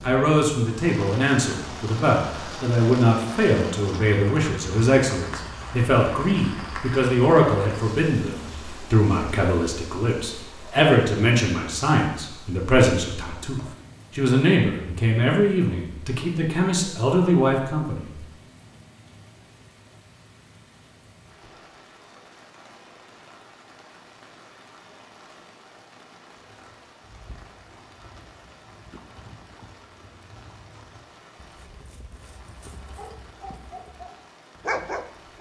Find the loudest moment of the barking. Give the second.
35 s.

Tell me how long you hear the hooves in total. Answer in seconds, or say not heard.
8 s.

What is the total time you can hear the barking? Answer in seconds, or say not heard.
2 s.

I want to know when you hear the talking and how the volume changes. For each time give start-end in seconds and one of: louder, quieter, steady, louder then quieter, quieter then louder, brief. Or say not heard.
0.0-18.1 steady.